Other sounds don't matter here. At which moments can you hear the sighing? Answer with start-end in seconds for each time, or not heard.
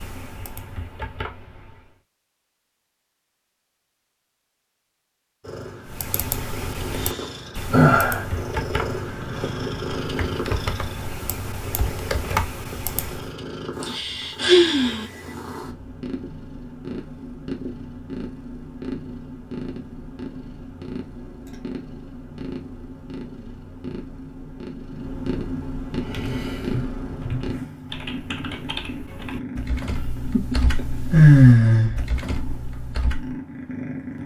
7.0-8.2, 13.8-15.1, 31.1-32.0.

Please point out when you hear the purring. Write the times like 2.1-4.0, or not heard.
5.4-34.2.